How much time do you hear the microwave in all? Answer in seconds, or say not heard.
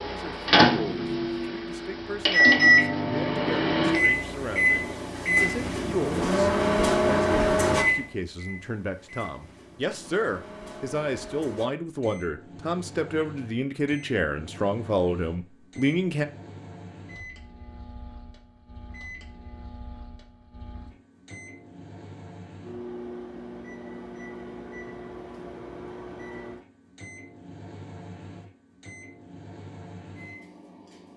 31 s.